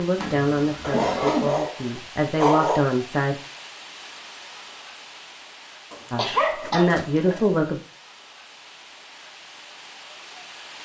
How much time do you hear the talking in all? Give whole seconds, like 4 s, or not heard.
5 s.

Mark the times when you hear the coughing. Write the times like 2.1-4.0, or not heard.
0.1-1.6, 6.2-7.5.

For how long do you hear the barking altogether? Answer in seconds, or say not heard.
4 s.